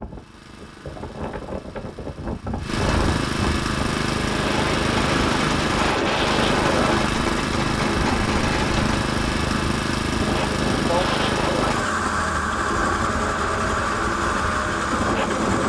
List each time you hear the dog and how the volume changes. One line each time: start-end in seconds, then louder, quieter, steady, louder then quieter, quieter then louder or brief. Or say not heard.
not heard.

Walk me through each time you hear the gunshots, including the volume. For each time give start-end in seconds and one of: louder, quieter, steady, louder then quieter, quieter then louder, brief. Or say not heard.
5.0-9.0 steady.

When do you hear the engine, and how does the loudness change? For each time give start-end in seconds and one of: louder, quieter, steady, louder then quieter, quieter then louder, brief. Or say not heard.
0.0-15.6 louder.